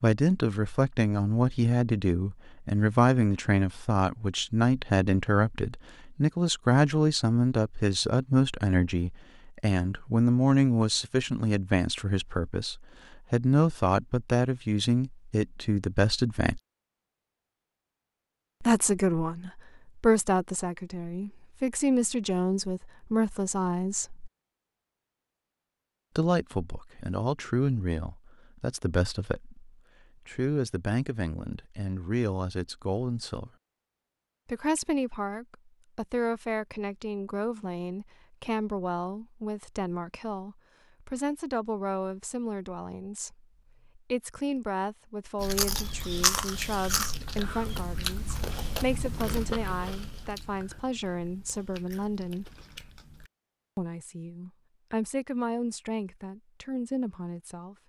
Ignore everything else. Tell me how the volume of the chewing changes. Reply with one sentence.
The loudness of the chewing goes down.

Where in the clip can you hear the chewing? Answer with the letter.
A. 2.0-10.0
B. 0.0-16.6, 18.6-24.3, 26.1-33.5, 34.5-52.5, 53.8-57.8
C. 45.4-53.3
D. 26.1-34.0
C.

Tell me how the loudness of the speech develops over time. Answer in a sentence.
The volume of the speech goes down.